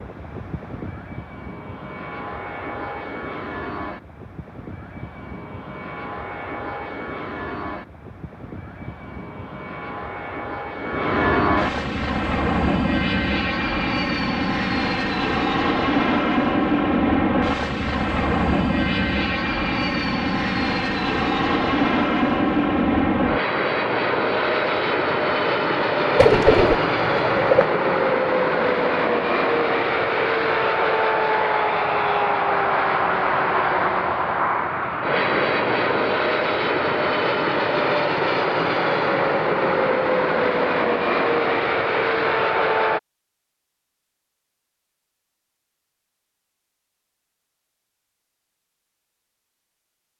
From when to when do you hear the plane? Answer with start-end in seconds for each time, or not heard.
0.0-43.0.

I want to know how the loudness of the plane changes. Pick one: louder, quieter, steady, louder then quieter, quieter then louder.
louder.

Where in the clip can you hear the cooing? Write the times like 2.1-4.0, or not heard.
26.1-27.6.